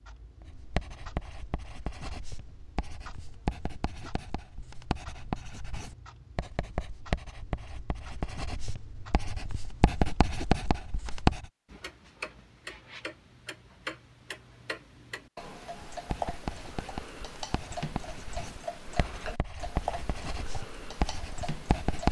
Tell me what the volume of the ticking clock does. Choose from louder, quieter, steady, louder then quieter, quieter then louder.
louder.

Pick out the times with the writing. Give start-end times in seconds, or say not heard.
0.4-11.4, 15.9-22.0.